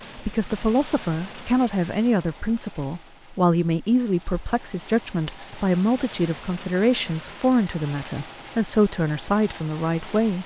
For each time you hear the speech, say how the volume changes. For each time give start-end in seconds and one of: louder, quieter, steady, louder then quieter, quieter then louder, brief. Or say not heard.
0.1-10.4 steady.